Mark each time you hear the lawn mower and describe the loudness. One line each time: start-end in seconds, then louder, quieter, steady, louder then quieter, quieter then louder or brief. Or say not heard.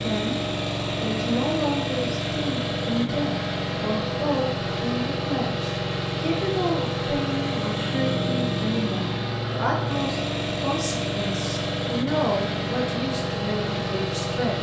0.0-14.5 steady.